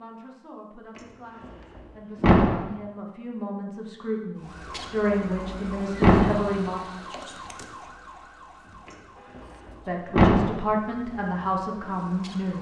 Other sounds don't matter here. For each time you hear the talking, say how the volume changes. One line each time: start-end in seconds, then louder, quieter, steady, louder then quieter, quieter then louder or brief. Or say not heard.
0.0-6.8 louder
9.8-12.5 brief.